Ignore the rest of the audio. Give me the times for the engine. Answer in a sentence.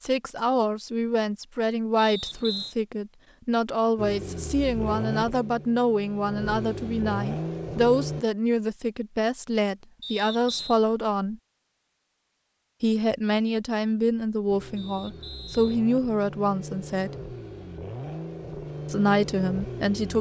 You can hear the engine from 4.0 to 8.2 s and from 14.4 to 20.1 s.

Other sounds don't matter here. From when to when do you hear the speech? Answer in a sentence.
The speech can be heard from 0.0 to 11.4 s, from 12.8 to 17.1 s and from 18.9 to 20.1 s.